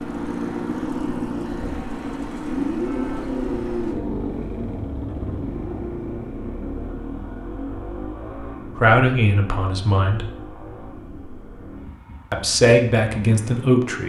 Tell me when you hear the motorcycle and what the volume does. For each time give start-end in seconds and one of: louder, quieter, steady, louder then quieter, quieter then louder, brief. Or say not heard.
0.0-14.0 quieter.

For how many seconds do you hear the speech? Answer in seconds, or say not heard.
3 s.